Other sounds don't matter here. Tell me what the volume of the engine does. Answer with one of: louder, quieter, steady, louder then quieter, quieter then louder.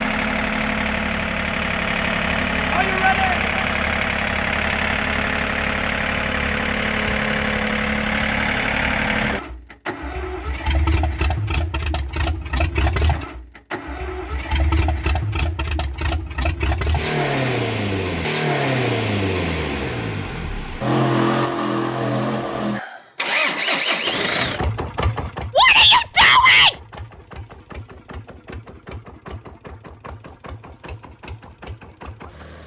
quieter.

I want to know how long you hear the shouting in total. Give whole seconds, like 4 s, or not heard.
2 s.